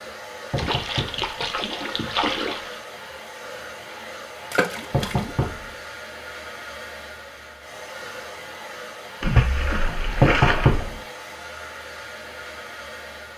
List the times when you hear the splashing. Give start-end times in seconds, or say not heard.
0.6-2.8, 4.5-5.5, 9.2-10.9.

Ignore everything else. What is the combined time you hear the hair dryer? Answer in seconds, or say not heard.
13 s.